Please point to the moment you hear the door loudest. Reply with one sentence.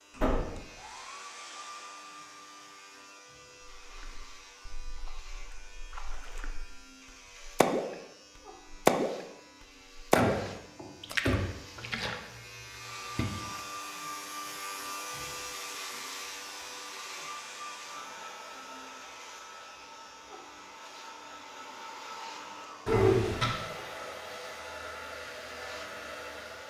The loudest moment of the door is at 23 seconds.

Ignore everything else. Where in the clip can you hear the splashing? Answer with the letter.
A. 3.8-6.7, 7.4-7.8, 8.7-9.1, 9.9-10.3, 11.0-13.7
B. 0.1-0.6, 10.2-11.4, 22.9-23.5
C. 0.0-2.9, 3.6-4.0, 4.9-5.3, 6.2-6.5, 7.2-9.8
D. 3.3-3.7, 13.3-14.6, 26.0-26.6
A.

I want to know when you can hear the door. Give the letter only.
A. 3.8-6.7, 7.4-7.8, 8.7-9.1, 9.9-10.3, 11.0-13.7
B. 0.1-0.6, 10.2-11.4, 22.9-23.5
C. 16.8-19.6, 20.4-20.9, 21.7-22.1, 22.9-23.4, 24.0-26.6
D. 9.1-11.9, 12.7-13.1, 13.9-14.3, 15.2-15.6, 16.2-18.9
B.